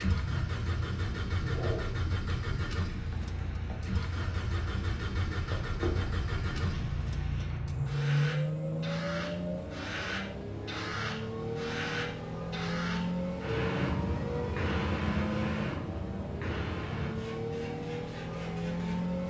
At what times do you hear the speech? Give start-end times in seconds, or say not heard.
not heard.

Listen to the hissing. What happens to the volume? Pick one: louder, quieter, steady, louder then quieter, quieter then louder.
steady.